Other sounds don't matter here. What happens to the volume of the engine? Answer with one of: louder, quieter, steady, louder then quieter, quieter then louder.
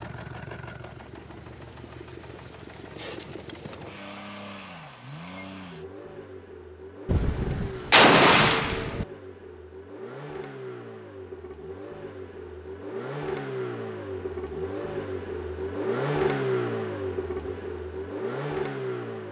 louder.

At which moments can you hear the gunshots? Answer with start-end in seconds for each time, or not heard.
7.0-9.1.